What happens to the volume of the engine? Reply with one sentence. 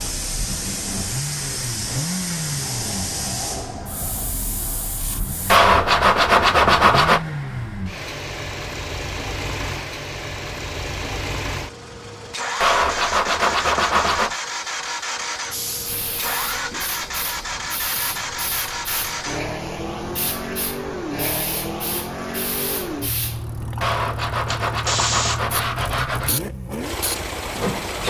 The volume of the engine stays about the same.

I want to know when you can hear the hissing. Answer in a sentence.
The hissing can be heard from 0.0 to 5.6 s and from 15.5 to 28.0 s.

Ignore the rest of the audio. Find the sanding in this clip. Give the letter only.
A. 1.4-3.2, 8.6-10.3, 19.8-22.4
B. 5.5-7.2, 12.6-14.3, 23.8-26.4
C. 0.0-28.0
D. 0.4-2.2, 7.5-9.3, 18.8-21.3
B.